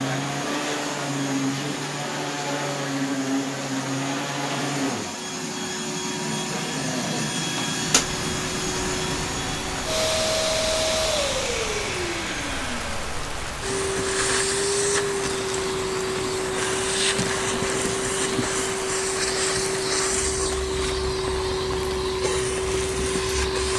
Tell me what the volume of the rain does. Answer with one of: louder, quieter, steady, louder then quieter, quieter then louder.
steady.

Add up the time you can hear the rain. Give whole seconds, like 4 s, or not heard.
16 s.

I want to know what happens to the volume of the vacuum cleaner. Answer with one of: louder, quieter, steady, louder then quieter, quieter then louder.
steady.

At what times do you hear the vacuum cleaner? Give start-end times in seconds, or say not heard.
0.0-23.7.